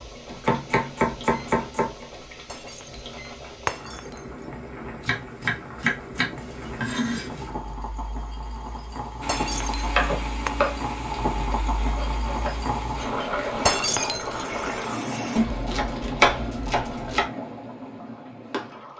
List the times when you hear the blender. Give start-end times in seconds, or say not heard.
9.2-15.4.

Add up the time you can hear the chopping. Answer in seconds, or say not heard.
8 s.